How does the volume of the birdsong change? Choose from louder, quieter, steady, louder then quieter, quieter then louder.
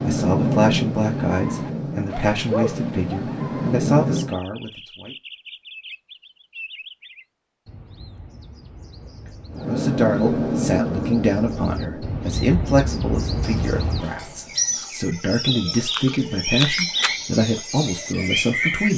quieter then louder.